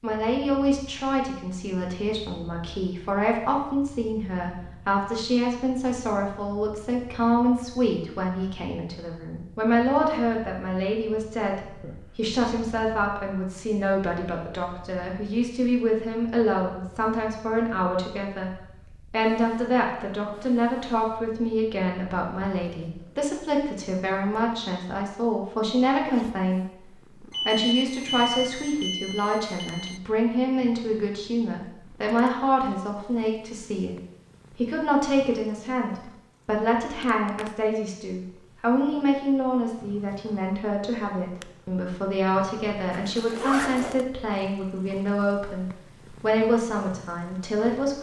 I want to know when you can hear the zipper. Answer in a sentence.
You can hear the zipper from 11.8 to 12.3 s and from 42.9 to 44.0 s.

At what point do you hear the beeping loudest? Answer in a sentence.
The volume of the beeping peaks at 28 seconds.